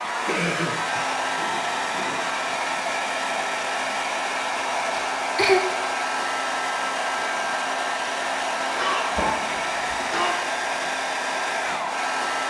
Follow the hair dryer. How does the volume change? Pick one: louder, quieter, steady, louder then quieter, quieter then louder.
steady.